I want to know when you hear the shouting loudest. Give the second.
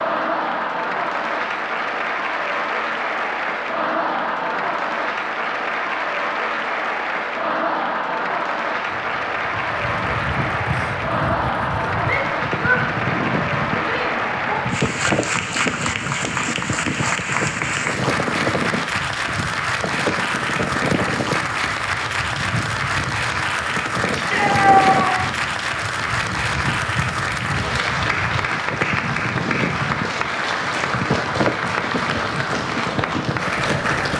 25 s.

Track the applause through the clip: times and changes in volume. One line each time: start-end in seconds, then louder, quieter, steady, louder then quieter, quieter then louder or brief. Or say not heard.
0.0-34.1 steady.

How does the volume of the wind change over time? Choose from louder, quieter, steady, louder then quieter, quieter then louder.
steady.